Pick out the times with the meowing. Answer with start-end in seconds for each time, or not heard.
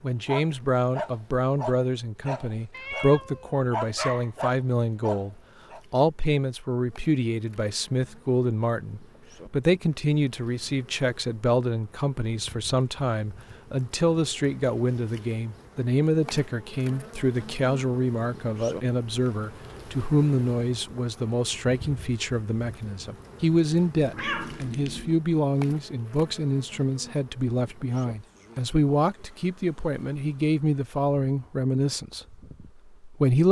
2.7-4.3, 23.9-25.2.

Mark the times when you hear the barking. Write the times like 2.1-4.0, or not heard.
0.2-5.8.